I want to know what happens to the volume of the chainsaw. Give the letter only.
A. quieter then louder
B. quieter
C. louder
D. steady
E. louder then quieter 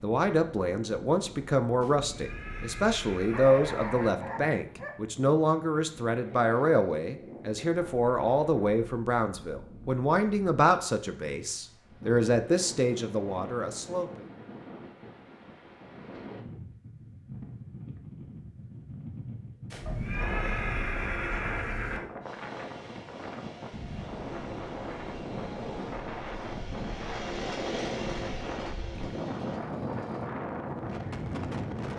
E.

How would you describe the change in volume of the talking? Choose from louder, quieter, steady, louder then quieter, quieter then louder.
steady.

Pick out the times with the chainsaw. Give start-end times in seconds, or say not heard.
22.2-30.3.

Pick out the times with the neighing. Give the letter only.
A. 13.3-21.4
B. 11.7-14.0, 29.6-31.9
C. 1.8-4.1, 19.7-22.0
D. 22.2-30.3
C.